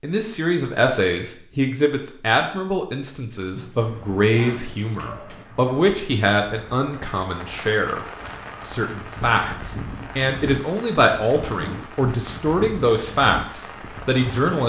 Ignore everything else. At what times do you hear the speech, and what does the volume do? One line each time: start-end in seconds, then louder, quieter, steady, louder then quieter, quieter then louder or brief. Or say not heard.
0.0-14.6 steady.